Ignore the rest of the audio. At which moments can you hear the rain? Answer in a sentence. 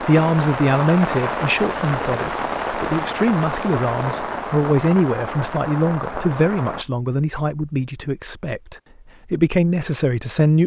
The rain can be heard from 0.0 to 6.8 s.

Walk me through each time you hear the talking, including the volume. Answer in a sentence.
You can hear the talking from 0.0 to 10.6 s, at a steady volume.